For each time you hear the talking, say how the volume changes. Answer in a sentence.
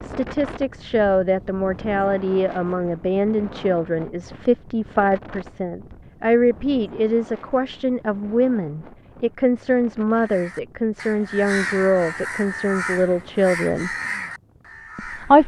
You can hear the talking from 0.0 to 13.9 s, at a steady volume; and briefly from 14.9 to 15.4 s.